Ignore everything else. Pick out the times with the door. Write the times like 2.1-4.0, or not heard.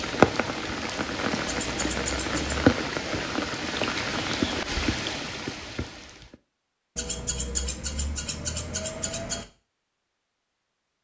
not heard.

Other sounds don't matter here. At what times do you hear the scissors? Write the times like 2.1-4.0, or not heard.
1.4-2.7, 7.0-9.4.